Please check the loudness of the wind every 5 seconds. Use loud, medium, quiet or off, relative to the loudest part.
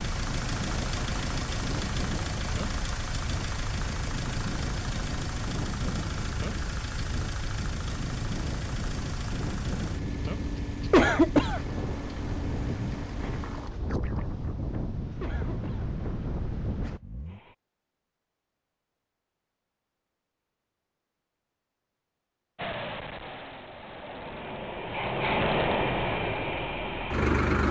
loud, loud, loud, loud, off, off.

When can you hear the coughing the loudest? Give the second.
11 s.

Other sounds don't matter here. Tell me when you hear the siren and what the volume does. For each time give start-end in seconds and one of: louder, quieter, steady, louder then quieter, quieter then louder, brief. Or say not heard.
not heard.